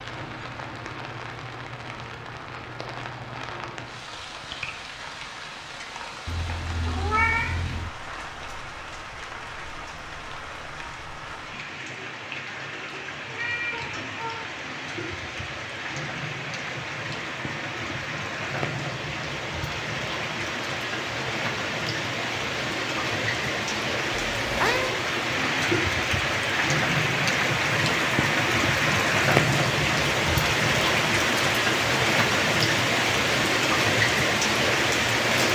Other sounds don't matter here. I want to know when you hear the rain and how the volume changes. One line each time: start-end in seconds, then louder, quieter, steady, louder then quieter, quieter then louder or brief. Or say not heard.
0.0-35.4 louder.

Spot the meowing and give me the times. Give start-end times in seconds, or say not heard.
6.2-7.9, 13.2-14.6, 24.4-24.9.